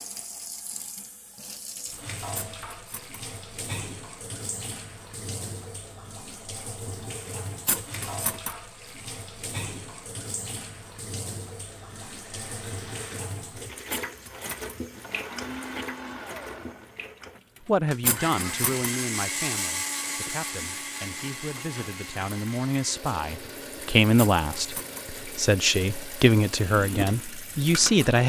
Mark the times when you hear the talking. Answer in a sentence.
The talking can be heard from 17.6 to 28.2 s.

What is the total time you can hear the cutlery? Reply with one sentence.
You can hear the cutlery for 4 seconds altogether.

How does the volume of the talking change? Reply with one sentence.
The loudness of the talking goes down, then up.